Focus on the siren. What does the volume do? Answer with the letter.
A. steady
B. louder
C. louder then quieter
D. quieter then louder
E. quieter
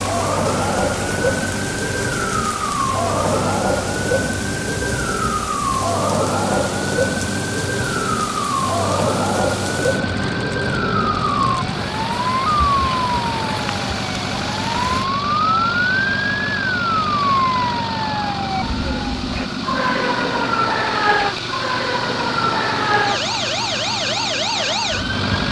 A.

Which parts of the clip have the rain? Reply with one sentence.
You can hear the rain from 0.0 to 15.1 s.